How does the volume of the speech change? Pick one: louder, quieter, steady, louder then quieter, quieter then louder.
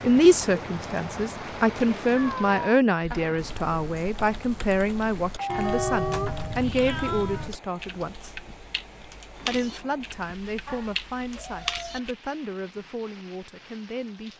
quieter.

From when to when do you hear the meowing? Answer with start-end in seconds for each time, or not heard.
2.1-2.8, 5.5-7.5, 10.7-12.0.